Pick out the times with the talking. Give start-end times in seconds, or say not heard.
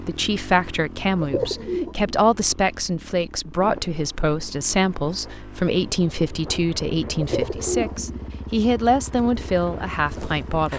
0.0-10.7.